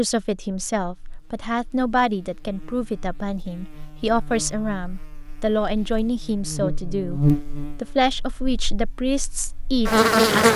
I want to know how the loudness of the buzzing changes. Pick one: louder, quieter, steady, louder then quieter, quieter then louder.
louder.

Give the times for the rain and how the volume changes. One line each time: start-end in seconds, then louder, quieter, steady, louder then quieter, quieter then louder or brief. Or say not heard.
not heard.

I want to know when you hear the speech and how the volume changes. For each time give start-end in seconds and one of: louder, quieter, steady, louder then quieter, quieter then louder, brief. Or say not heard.
0.0-10.5 steady.